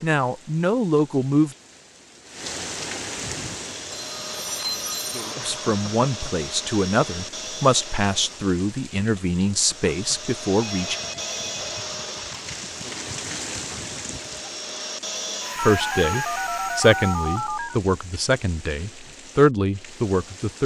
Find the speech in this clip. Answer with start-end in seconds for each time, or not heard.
0.0-1.6, 5.5-10.9, 15.6-20.6.